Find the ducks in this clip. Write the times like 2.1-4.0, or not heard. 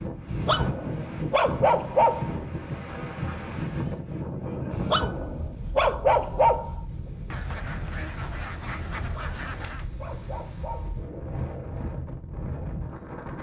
2.2-3.5, 7.3-9.9.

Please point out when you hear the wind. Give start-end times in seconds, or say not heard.
0.0-13.3.